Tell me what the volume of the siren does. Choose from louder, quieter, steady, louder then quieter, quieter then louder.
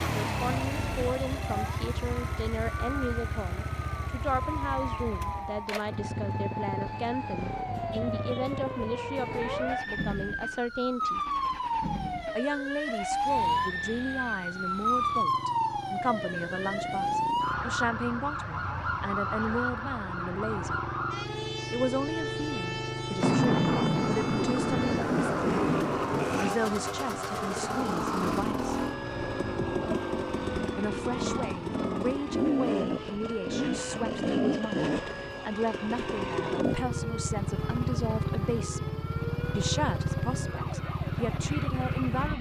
louder then quieter.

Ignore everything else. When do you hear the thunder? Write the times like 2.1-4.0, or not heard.
23.2-26.6.